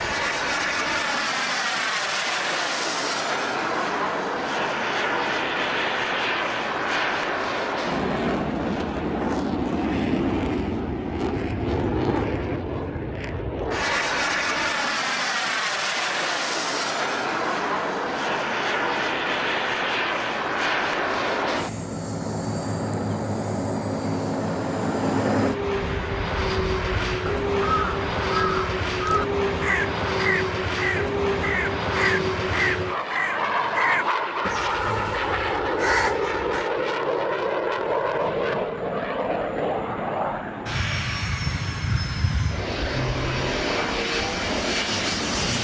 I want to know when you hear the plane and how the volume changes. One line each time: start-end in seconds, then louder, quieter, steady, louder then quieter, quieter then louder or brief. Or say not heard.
0.0-45.6 steady.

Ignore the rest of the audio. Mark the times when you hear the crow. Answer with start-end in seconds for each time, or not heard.
25.7-36.7.